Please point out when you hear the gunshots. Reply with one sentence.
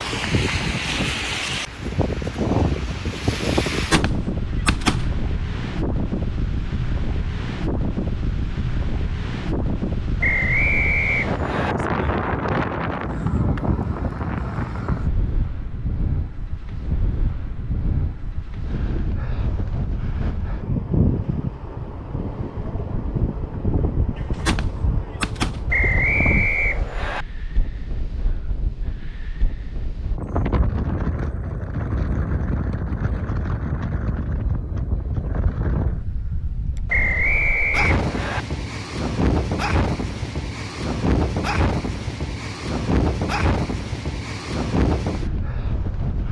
The gunshots can be heard from 3.7 to 5.2 s and from 24.1 to 25.8 s.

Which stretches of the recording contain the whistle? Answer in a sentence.
You can hear the whistle from 10.2 to 11.8 s, from 25.7 to 27.2 s and from 36.9 to 38.4 s.